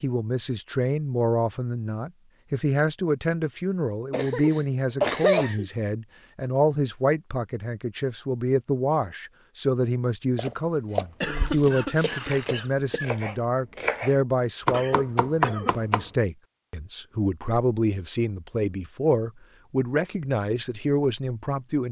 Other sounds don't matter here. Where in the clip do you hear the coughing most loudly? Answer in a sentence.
The loudest moment of the coughing is at 5 seconds.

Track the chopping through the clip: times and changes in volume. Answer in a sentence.
The chopping can be heard from 10.3 to 16.1 s, getting quieter then louder.